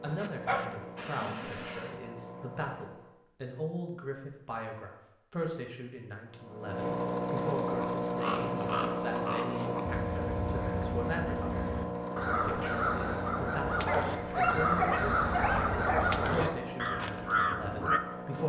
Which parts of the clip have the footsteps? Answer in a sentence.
You can't hear the footsteps here.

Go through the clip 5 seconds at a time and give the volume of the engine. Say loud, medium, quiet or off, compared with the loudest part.
quiet, loud, loud, medium.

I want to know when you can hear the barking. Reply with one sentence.
You can hear the barking from 0.1 to 1.9 s and from 13.8 to 16.6 s.